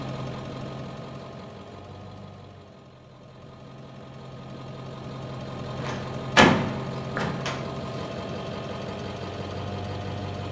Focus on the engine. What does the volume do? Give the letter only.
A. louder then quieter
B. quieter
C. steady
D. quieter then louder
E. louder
D.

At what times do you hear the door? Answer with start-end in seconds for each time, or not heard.
5.8-7.6.